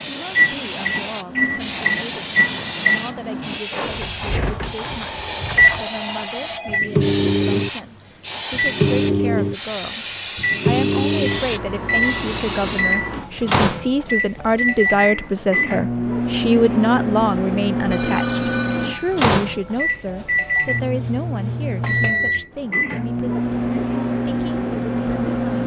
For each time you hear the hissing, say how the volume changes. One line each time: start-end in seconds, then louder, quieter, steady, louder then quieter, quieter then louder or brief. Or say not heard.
0.0-12.8 steady.